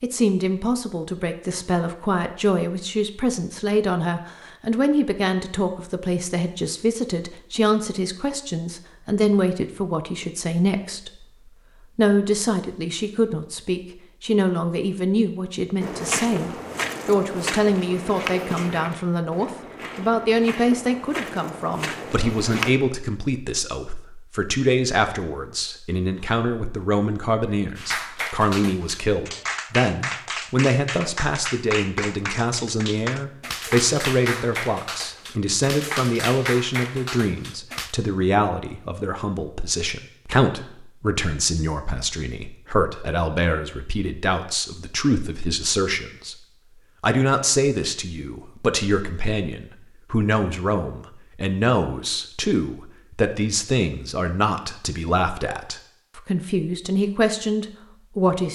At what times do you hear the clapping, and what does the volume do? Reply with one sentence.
You can hear the clapping from 27.8 to 38.0 s, at a steady volume.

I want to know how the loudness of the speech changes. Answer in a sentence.
The volume of the speech stays about the same.